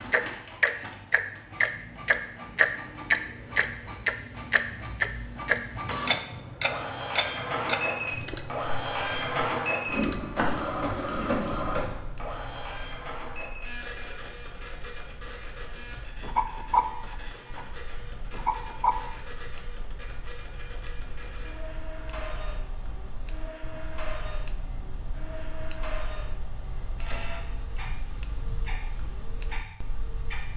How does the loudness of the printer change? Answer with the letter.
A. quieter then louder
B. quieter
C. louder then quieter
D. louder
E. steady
C.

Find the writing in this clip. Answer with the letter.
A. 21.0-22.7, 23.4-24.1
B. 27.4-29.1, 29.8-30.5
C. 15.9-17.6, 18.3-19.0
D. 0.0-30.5
C.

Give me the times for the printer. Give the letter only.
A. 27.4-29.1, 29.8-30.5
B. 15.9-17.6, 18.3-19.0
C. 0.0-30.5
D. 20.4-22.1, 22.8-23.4
C.